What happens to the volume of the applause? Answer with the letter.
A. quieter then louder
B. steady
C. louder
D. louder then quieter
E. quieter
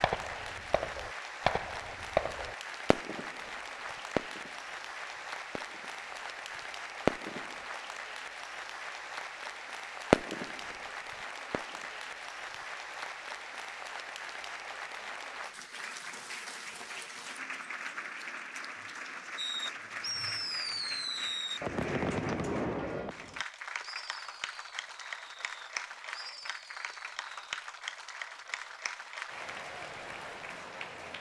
B.